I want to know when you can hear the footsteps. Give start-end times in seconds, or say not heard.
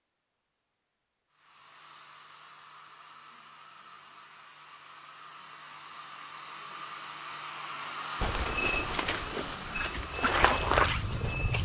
8.2-11.6.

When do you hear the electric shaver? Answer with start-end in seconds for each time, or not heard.
not heard.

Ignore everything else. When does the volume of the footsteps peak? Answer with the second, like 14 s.
11 s.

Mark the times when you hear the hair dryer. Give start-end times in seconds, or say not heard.
1.3-11.6.